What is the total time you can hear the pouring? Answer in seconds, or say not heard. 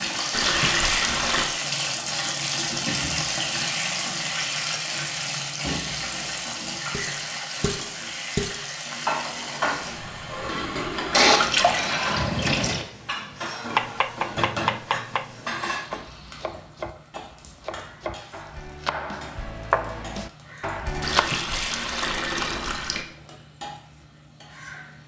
5 s.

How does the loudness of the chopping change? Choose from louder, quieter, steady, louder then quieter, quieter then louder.
quieter then louder.